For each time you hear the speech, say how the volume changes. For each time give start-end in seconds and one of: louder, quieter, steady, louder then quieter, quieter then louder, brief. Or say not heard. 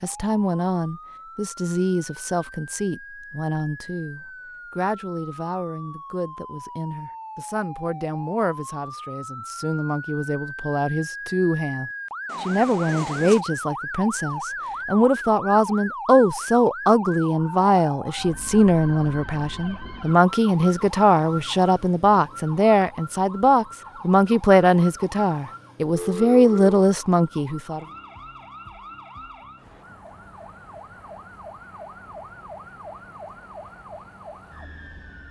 0.0-27.9 louder.